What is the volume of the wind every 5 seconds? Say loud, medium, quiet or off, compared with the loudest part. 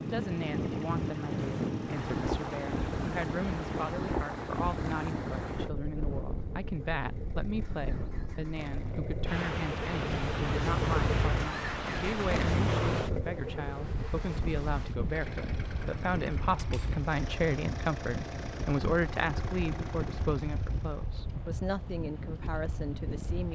loud, medium, loud, medium, medium.